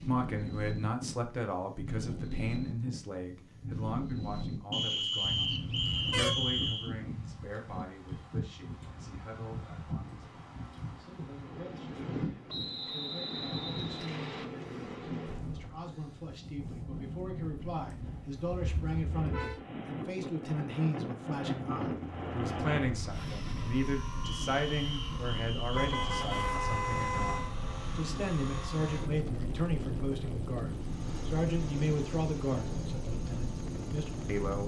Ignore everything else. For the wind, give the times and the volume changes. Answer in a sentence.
You can hear the wind from 0.0 to 34.6 s, at a steady volume.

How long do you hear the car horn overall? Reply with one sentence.
The car horn can be heard for 4 seconds in total.